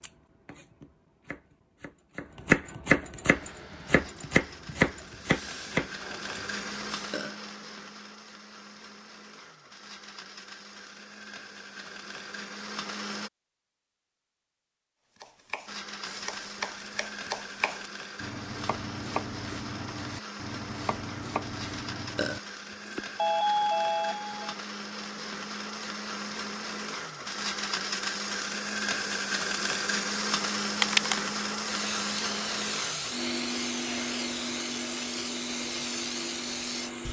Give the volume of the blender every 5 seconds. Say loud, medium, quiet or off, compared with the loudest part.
quiet, medium, medium, medium, medium, loud, loud, medium.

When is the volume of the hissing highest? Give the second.
31 s.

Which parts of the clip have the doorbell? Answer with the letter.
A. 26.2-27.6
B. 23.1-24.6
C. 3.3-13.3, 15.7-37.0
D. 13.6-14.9
B.